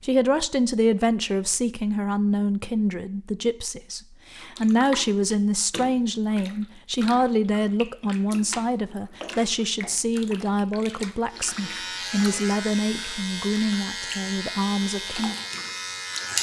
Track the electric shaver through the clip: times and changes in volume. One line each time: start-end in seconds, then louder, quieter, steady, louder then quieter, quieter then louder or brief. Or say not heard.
11.2-16.3 steady.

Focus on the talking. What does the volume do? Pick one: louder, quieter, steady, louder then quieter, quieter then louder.
steady.